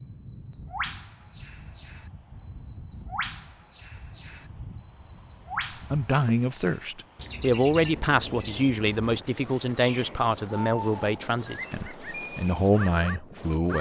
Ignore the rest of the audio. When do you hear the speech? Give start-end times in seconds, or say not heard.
5.9-13.7.